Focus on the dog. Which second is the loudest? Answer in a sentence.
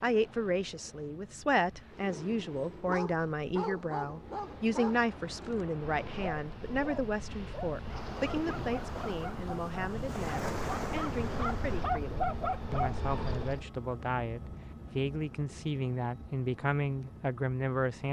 The loudest moment of the dog is at 12 seconds.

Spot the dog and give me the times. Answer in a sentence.
The dog can be heard from 1.9 to 13.7 s.